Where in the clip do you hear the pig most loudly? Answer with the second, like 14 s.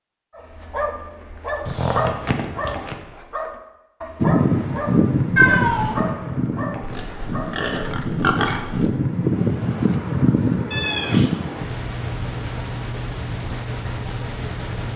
8 s.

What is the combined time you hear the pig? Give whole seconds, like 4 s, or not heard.
2 s.